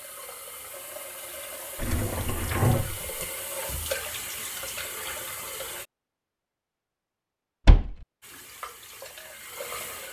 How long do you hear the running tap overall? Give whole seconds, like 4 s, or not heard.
8 s.